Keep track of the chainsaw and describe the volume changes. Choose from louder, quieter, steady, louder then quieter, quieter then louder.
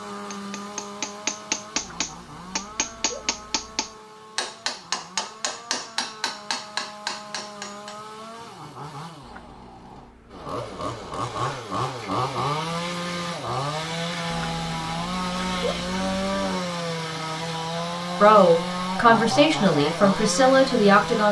louder.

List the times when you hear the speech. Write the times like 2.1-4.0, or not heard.
18.2-21.2.